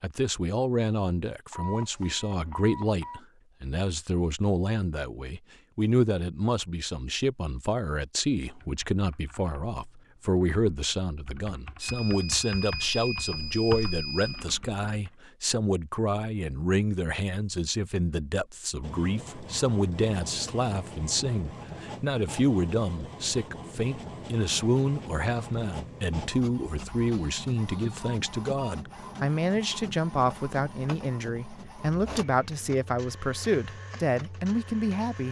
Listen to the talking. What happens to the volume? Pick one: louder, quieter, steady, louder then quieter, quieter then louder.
steady.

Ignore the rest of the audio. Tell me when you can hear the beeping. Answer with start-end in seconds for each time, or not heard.
1.5-3.2, 11.8-14.4, 27.1-28.8.